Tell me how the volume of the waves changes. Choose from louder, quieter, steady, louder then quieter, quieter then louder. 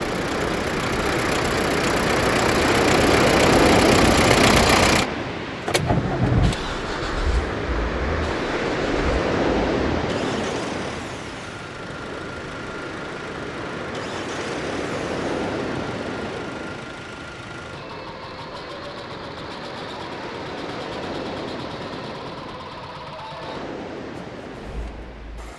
quieter.